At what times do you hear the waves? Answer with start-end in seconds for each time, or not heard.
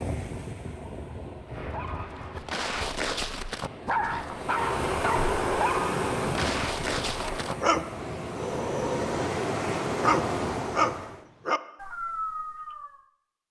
0.0-11.2.